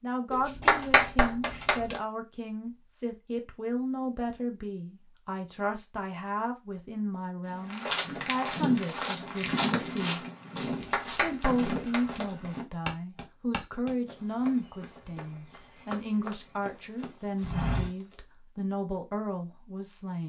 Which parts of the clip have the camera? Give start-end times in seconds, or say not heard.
not heard.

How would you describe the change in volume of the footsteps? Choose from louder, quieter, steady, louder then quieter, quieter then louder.
quieter then louder.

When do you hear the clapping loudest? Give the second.
1 s.